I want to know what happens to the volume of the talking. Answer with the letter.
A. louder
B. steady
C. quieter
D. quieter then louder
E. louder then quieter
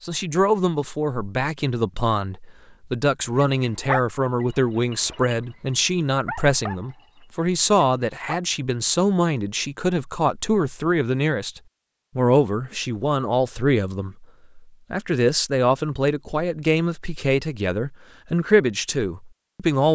B.